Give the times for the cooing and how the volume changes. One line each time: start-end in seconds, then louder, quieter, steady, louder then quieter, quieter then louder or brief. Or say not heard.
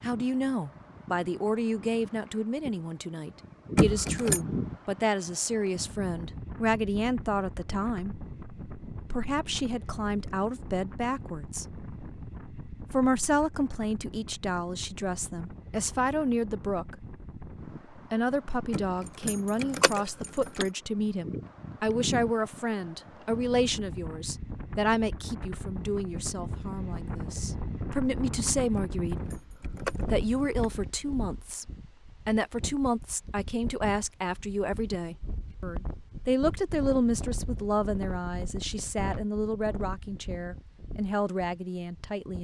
not heard.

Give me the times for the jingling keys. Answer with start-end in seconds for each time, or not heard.
3.8-4.4, 18.7-20.7, 28.8-30.7.